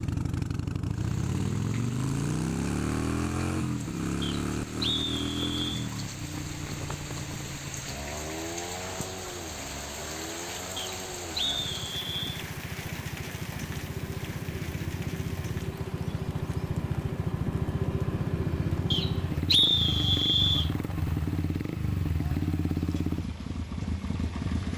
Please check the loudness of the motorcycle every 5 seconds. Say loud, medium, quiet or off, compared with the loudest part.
loud, medium, medium, loud, loud.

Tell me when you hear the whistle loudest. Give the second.
20 s.